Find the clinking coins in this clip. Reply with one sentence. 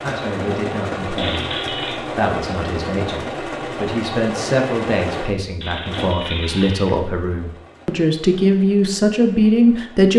The clinking coins can be heard from 1.1 to 2.0 s and from 5.6 to 6.9 s.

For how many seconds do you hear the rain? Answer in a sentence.
You can't hear the rain here.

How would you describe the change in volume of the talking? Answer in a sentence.
The volume of the talking goes up.